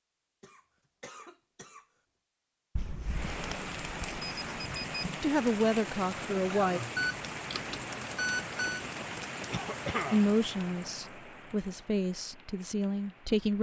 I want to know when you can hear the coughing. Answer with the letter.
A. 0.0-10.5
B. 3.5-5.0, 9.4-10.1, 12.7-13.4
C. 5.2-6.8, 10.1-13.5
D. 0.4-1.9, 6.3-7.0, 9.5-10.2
D.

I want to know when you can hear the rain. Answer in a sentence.
You can hear the rain from 3.0 to 13.5 s.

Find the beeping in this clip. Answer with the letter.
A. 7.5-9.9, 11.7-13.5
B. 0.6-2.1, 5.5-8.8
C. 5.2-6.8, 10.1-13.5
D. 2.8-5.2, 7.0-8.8
D.